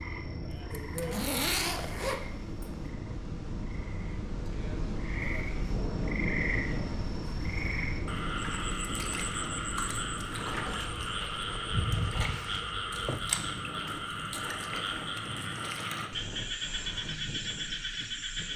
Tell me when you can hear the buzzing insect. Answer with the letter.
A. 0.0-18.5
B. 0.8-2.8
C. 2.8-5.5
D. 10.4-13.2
D.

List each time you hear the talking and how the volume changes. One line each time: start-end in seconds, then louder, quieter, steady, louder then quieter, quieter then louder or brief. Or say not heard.
not heard.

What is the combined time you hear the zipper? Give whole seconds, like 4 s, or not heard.
2 s.